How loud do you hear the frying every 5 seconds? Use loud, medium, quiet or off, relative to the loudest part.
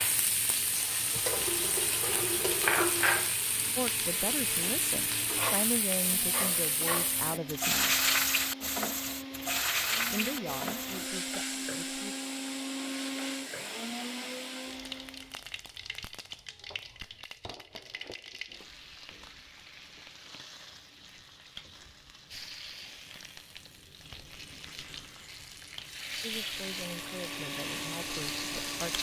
loud, loud, medium, quiet, quiet, medium.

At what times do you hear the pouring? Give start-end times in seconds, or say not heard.
1.1-3.3.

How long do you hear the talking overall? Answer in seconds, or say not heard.
9 s.